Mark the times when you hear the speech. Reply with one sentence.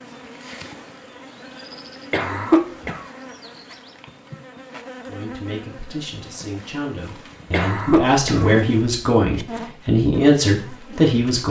The speech can be heard from 5.0 to 11.4 s.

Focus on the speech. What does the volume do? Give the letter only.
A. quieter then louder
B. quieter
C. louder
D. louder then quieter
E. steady
C.